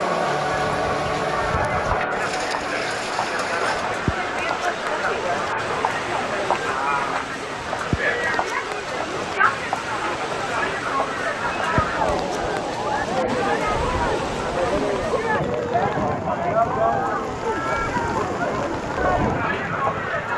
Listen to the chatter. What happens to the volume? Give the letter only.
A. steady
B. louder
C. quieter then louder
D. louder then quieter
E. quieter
A.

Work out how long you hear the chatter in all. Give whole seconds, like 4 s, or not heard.
20 s.